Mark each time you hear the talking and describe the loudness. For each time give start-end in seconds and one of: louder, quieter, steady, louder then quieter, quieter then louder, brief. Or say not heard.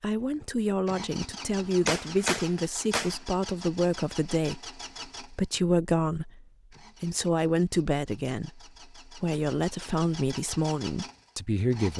0.0-11.9 steady.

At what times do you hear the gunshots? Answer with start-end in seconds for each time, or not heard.
1.7-3.2.